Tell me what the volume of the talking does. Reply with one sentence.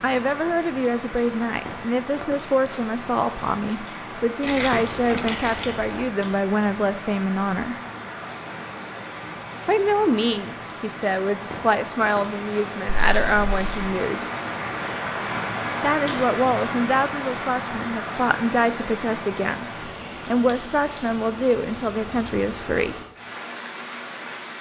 The loudness of the talking stays about the same.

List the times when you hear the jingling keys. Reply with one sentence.
The jingling keys can be heard from 4.4 to 6.0 s and from 12.9 to 13.8 s.